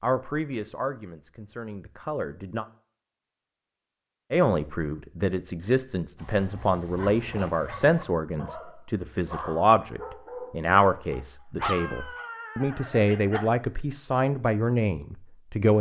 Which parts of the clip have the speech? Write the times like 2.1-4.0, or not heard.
0.0-2.6, 4.3-15.7.